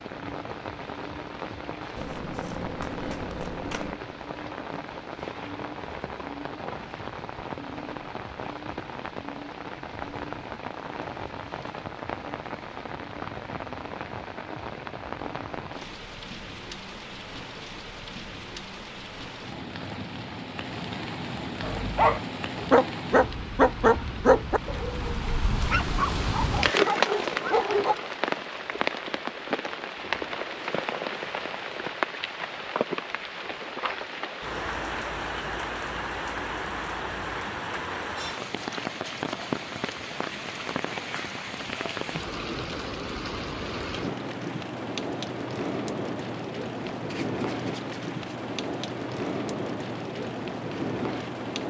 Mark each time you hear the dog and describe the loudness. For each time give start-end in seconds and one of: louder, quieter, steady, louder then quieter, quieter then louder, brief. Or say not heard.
21.6-27.9 quieter.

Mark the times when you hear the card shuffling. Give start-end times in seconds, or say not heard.
1.9-4.0, 47.0-48.2.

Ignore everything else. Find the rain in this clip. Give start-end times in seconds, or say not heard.
0.0-51.6.